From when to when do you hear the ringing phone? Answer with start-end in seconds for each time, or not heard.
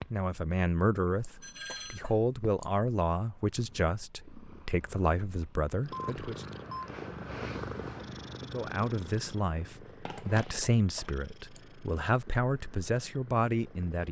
1.4-2.0, 5.8-6.9, 10.1-10.6.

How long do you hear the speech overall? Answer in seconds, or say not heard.
12 s.